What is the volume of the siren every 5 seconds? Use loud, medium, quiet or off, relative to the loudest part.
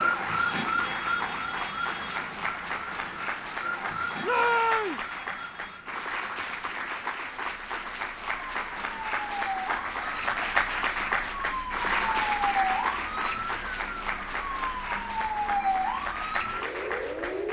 loud, medium, loud, loud.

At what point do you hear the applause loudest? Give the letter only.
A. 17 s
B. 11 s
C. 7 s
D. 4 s
B.